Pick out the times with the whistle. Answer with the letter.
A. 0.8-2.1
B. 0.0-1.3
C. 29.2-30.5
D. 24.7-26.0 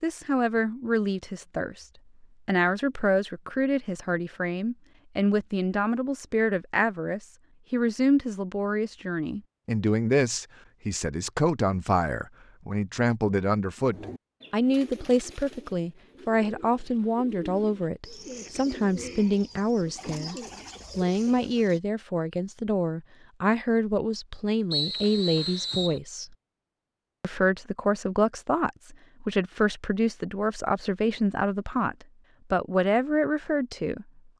D.